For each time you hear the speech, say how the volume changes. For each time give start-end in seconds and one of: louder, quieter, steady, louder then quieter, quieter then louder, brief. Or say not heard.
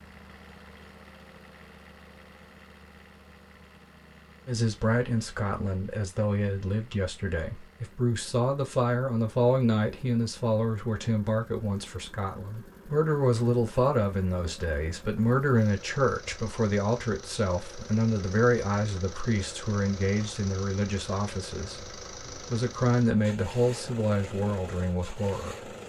4.5-25.8 steady.